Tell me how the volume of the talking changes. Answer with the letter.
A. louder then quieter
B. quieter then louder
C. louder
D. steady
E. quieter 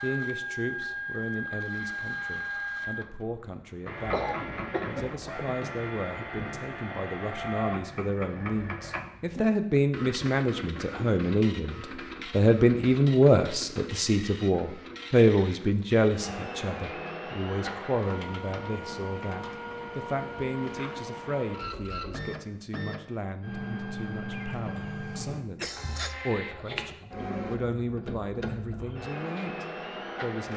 A.